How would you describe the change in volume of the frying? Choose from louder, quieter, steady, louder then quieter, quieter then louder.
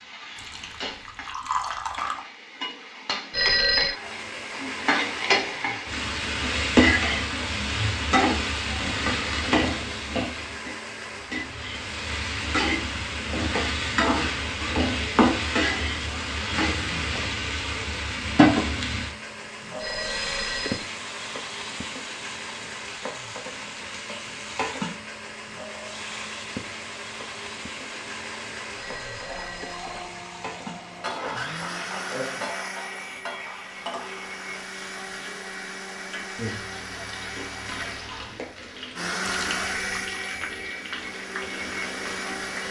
quieter.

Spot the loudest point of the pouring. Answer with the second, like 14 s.
2 s.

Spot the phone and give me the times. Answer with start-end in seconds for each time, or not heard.
3.3-4.0, 19.8-20.9, 28.8-29.9.